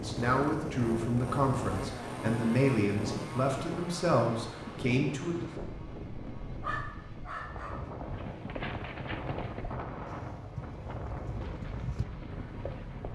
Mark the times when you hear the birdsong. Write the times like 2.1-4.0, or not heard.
not heard.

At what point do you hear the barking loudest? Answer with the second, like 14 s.
7 s.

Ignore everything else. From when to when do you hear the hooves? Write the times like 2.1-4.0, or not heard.
8.1-13.0.